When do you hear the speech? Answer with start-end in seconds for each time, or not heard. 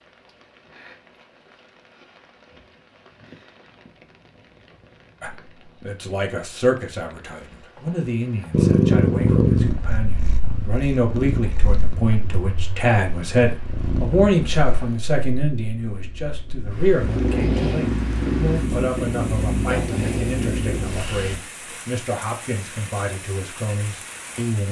5.2-24.6.